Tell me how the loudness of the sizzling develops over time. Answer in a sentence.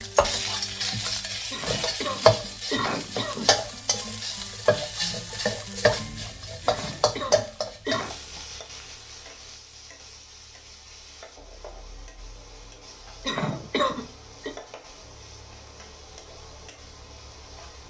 The volume of the sizzling goes down.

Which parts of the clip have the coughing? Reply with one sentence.
The coughing can be heard from 1.5 to 3.5 s, from 6.7 to 8.2 s and from 13.2 to 14.5 s.